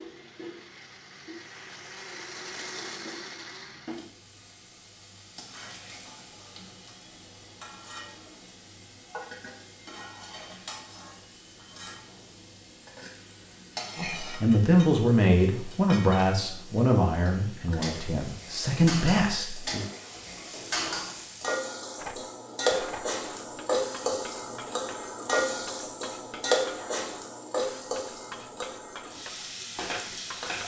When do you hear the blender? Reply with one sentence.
The blender can be heard from 0.0 to 4.2 s.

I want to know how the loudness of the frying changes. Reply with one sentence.
The loudness of the frying goes up.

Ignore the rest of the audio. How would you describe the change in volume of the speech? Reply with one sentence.
The volume of the speech goes down, then up.